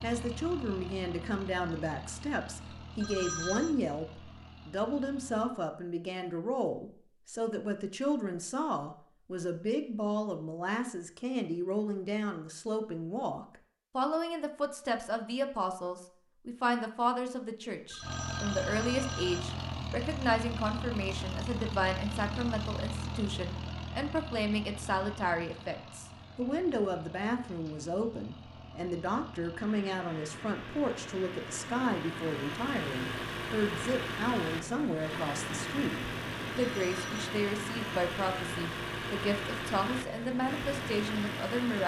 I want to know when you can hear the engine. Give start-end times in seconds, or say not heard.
0.0-5.5, 18.0-41.8.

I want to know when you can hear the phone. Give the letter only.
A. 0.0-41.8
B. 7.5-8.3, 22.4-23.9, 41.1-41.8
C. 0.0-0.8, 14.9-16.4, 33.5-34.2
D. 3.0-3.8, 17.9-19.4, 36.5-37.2
D.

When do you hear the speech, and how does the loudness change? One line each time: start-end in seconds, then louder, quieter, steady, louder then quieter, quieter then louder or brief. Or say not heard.
0.0-41.8 steady.